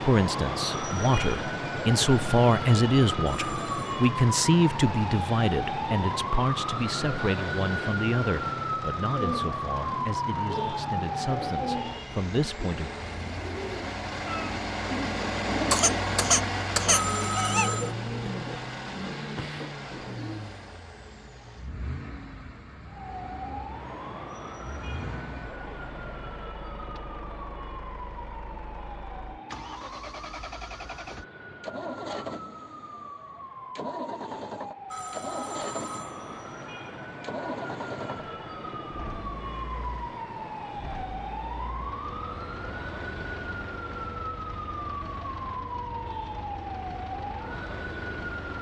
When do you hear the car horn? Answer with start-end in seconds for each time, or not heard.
not heard.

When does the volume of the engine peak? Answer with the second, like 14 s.
16 s.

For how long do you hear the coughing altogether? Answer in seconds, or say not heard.
2 s.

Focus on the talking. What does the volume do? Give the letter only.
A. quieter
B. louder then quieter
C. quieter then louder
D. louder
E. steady
A.